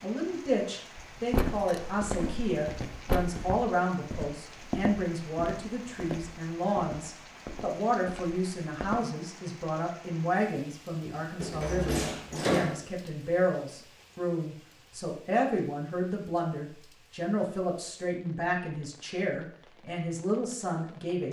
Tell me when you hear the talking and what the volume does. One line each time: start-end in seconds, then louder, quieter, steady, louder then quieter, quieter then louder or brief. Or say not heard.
0.0-21.2 steady.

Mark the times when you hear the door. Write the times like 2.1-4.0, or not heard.
1.3-3.4, 11.4-12.8.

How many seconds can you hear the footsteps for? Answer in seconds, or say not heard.
8 s.